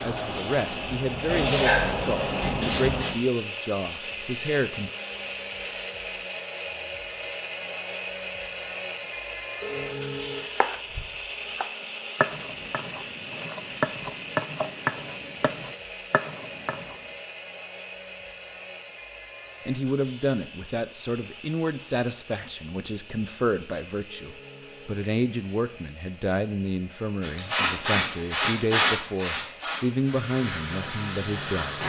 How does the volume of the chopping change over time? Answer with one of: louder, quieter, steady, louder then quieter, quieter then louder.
louder then quieter.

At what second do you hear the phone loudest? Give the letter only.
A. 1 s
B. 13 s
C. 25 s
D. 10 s
D.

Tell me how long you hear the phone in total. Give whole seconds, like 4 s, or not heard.
2 s.